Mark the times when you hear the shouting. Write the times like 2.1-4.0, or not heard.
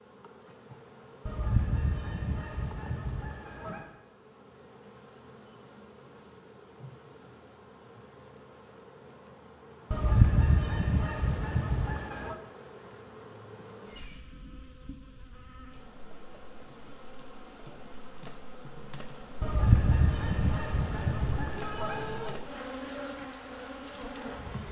21.5-22.4.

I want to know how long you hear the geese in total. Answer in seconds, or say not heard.
8 s.